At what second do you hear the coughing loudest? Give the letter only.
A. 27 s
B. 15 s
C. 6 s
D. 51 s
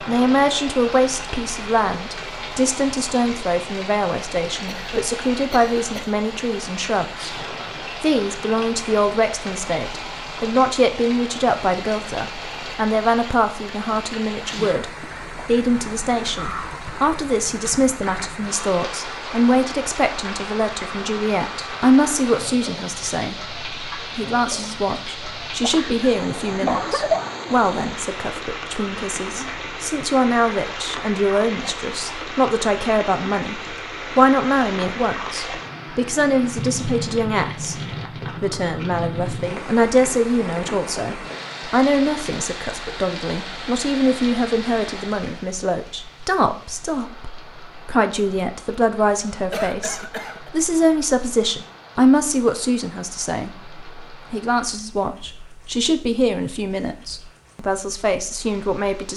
A.